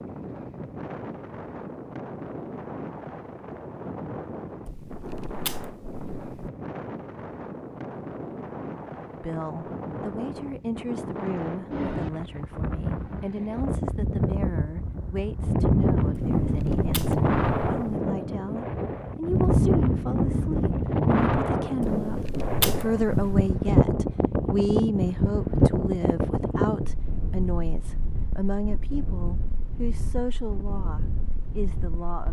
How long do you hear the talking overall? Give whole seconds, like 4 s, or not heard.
23 s.